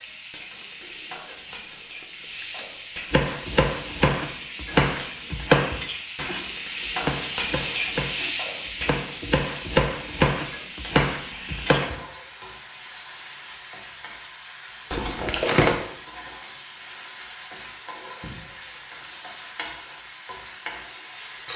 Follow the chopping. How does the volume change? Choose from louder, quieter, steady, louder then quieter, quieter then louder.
quieter then louder.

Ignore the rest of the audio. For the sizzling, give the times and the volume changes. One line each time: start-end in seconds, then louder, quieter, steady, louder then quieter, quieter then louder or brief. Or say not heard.
0.0-21.5 louder then quieter.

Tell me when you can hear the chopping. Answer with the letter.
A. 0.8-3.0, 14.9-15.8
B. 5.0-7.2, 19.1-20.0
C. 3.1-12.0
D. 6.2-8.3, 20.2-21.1
C.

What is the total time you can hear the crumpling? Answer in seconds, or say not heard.
3 s.